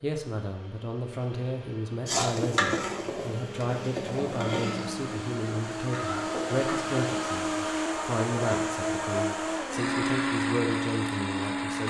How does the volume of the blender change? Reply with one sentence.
The loudness of the blender goes up.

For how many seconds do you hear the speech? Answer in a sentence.
You can hear the speech for 12 seconds altogether.